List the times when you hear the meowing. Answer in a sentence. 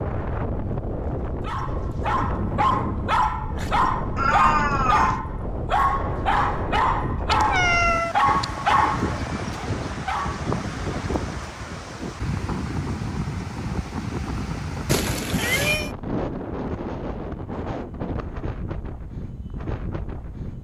You can hear the meowing from 4.2 to 5.2 s, from 7.3 to 8.4 s and from 14.8 to 15.9 s.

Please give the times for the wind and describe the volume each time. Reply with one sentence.
The wind can be heard from 0.0 to 20.5 s, at a steady volume.